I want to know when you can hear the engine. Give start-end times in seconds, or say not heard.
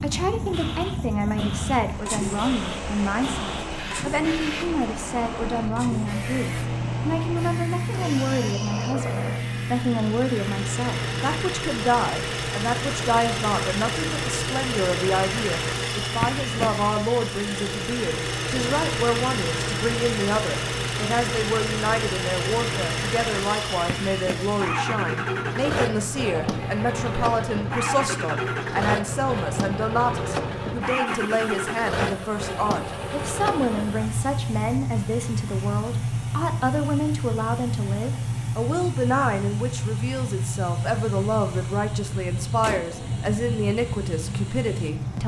0.0-45.2.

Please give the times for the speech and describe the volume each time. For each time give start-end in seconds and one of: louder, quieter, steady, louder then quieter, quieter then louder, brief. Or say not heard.
0.0-45.2 steady.